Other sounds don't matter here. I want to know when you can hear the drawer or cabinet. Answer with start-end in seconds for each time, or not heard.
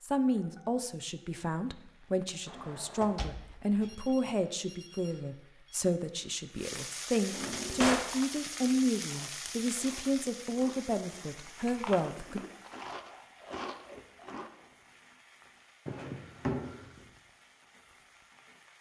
2.5-3.9, 7.3-8.1, 15.8-17.1.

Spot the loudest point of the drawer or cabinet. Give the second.
8 s.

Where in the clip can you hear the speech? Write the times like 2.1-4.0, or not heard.
0.0-12.4.